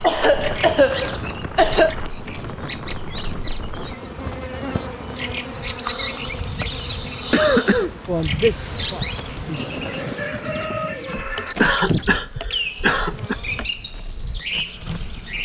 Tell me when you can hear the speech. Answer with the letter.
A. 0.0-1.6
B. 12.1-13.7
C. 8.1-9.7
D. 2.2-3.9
C.